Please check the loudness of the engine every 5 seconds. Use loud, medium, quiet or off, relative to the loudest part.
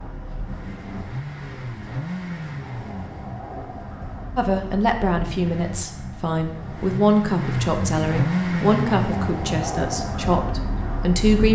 medium, loud, loud.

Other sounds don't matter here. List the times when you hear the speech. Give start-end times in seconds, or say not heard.
4.3-11.5.